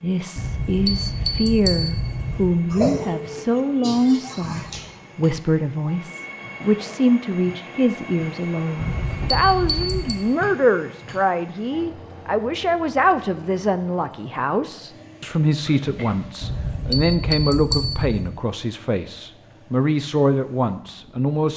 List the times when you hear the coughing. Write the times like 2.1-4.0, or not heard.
2.7-5.0, 15.7-16.4.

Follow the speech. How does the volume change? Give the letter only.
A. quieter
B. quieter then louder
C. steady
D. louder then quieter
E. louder
C.